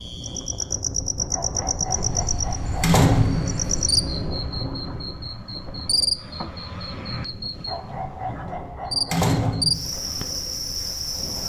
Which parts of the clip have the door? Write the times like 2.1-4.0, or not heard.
2.8-3.6, 9.1-9.9.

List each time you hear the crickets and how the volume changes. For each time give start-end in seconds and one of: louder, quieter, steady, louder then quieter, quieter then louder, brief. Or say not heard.
0.0-11.4 quieter then louder.